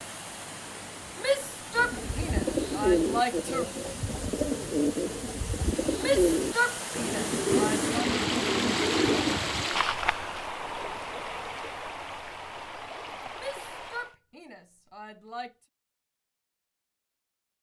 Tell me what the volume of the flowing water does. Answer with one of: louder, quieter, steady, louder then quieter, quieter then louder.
louder then quieter.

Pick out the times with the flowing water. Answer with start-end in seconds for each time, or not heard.
0.0-14.2.